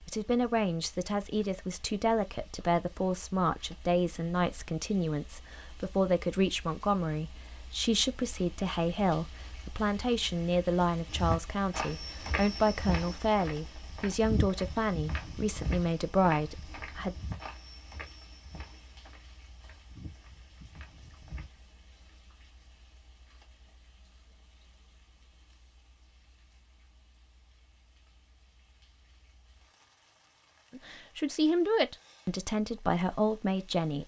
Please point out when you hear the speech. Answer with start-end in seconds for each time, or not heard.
0.1-17.1, 30.7-34.0.